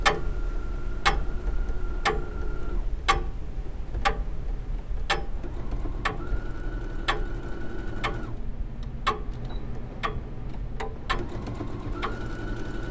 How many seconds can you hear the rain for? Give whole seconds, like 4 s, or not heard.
not heard.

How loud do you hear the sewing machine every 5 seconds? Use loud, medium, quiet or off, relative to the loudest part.
medium, loud, loud.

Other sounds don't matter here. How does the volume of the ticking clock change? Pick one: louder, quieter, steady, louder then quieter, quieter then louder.
quieter.